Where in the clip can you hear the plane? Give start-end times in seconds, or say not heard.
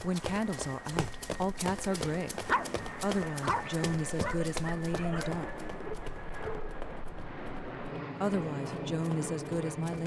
0.0-10.0.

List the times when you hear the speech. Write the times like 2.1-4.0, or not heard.
0.0-5.7, 8.2-10.0.